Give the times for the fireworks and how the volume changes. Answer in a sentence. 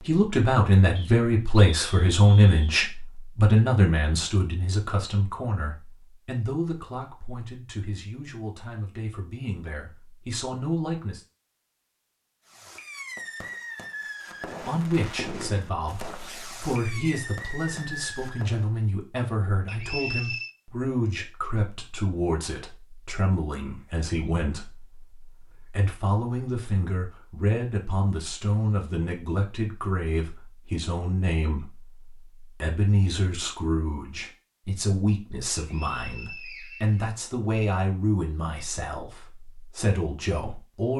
You can hear the fireworks from 12.4 to 18.7 s, at a steady volume.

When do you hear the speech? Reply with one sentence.
You can hear the speech from 0.0 to 11.2 s and from 14.6 to 40.9 s.